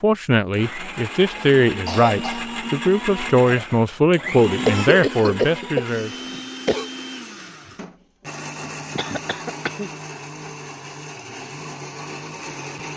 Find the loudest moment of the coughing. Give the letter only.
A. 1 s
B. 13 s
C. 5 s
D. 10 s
C.